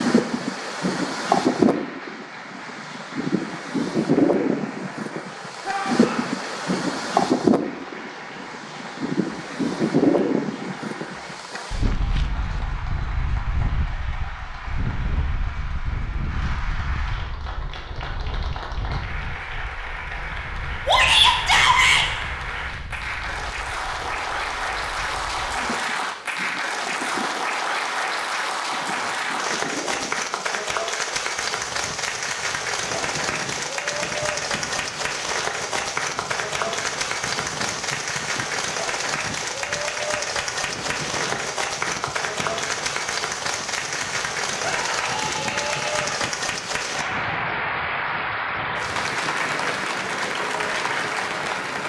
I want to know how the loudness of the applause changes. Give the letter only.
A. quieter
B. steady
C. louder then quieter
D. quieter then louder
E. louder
E.